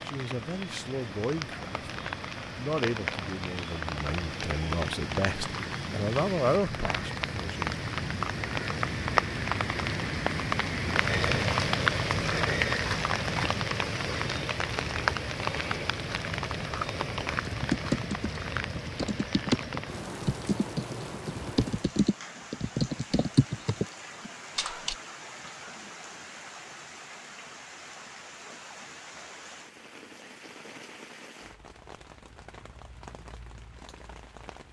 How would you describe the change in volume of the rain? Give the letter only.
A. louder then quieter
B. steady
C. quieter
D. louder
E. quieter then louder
A.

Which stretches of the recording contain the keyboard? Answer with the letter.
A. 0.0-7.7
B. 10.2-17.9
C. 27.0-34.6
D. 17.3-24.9
D.